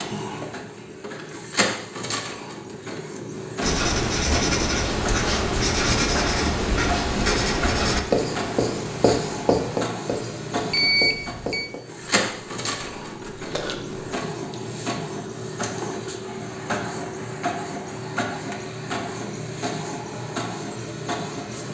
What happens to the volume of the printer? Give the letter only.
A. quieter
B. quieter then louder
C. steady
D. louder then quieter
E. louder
C.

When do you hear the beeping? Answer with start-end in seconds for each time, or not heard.
10.7-11.7.